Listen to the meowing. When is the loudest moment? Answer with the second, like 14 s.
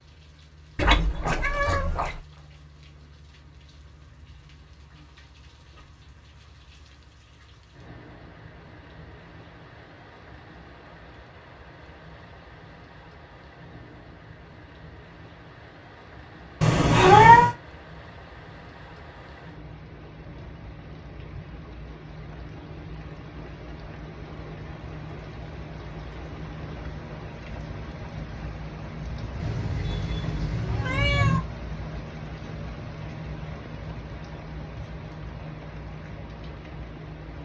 17 s.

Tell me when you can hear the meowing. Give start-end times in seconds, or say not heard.
0.8-2.2, 16.6-17.6, 29.4-31.4.